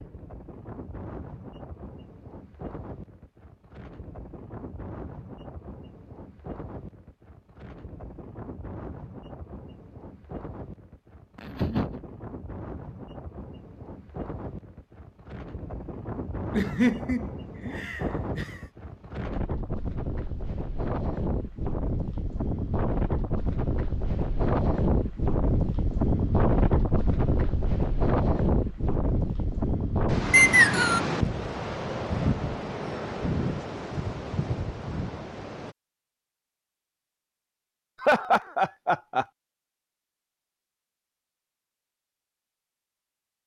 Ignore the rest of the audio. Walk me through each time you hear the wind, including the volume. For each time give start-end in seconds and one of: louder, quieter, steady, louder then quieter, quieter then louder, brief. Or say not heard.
0.0-35.8 louder.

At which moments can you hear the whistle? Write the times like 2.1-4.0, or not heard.
30.3-31.0.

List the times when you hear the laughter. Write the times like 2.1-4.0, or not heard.
11.3-12.0, 16.5-18.6, 38.0-39.2.